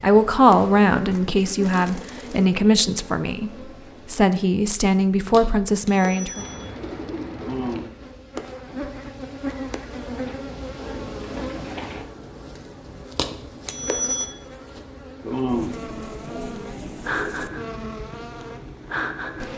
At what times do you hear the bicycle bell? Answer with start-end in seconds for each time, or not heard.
5.8-6.7, 13.7-14.3.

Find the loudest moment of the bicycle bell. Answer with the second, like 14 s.
14 s.